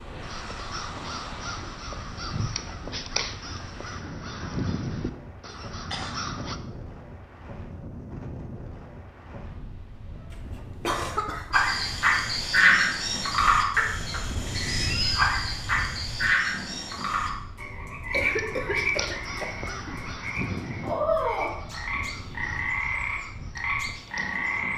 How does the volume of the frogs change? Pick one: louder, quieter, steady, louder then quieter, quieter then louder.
quieter.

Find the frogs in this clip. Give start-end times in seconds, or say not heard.
11.5-24.7.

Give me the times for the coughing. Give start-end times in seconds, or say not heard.
5.5-6.2, 10.3-11.6, 17.9-19.6.